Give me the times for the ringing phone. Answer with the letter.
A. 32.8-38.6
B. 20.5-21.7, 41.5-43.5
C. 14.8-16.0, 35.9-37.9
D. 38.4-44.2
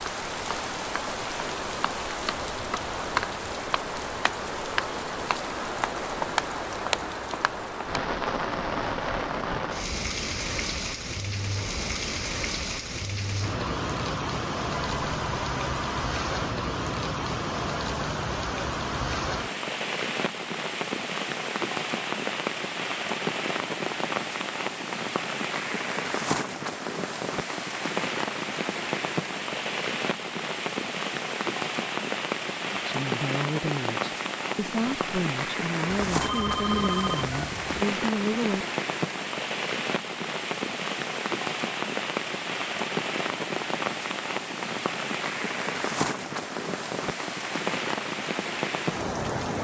C.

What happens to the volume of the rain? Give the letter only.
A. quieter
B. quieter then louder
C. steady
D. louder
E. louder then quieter
C.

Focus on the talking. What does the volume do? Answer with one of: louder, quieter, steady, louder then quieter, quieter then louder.
steady.